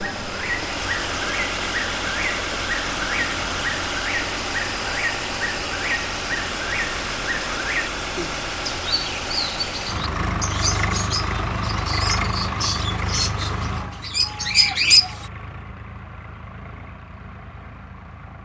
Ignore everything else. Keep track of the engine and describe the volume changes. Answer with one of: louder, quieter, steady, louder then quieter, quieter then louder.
quieter.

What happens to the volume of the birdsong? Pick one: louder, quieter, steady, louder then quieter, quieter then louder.
louder.